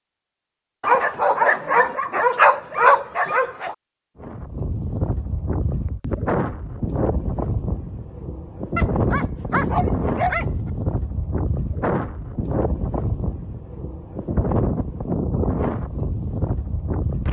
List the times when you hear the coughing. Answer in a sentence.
You can't hear the coughing here.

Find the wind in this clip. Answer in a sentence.
The wind can be heard from 4.2 to 17.2 s.